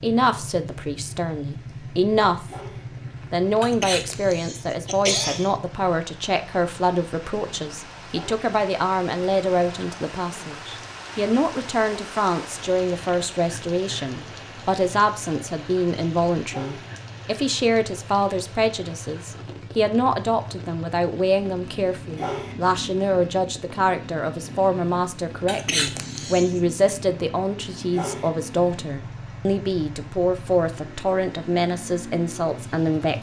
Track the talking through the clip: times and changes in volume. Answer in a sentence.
The talking can be heard briefly from 0.0 to 2.5 s; and from 3.3 to 33.1 s, at a steady volume.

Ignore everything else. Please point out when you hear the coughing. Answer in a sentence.
You can hear the coughing from 3.6 to 5.5 s and from 25.4 to 26.6 s.